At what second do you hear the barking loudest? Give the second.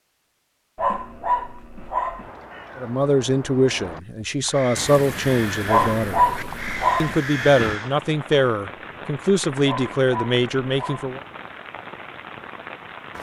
6 s.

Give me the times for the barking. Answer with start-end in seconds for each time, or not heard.
0.8-2.3, 5.7-7.2, 9.7-11.2.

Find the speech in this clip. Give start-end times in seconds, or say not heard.
2.8-6.2, 7.0-11.2.